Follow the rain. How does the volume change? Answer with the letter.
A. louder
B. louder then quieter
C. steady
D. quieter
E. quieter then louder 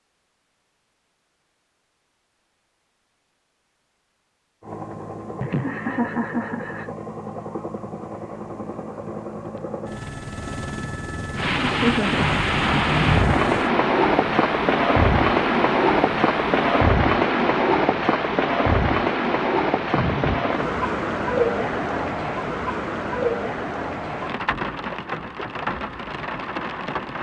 D.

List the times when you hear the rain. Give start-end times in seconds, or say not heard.
11.3-27.1.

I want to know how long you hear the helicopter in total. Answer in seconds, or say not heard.
12 s.